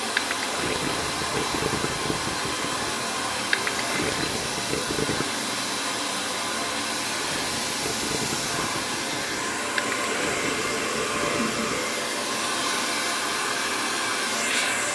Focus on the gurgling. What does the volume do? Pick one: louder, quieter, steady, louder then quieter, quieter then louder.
quieter.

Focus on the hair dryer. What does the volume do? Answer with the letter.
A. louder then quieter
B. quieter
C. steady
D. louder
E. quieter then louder
C.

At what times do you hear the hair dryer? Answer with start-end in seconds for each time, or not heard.
0.0-14.8.